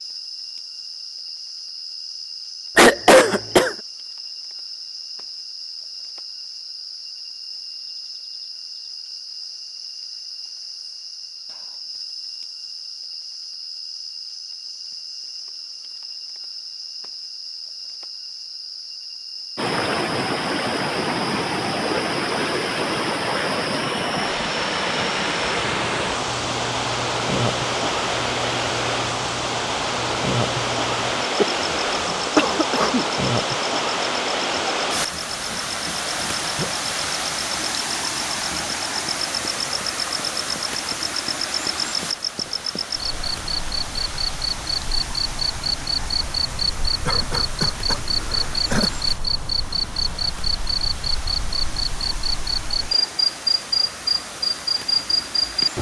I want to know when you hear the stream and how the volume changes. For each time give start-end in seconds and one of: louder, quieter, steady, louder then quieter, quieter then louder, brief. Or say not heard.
19.6-55.7 quieter.